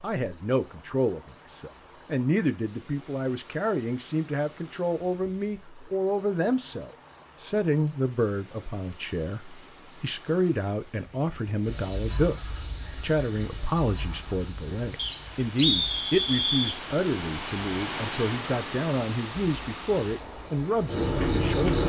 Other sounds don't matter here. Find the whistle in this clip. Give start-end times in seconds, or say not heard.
14.9-16.8.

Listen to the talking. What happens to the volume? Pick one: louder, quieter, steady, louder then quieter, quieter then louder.
steady.